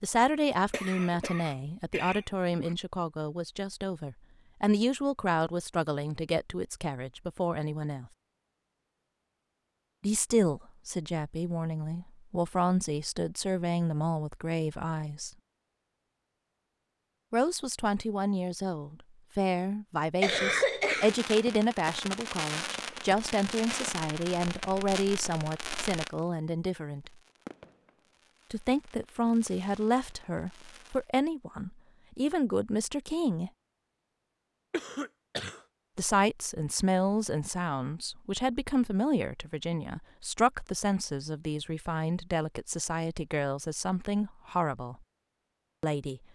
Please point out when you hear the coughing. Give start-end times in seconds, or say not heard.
0.7-2.8, 20.2-21.1, 34.7-35.6.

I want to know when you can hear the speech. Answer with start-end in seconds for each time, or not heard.
0.0-8.1, 10.0-15.3, 17.3-27.1, 28.5-33.5, 36.0-45.0, 45.8-46.2.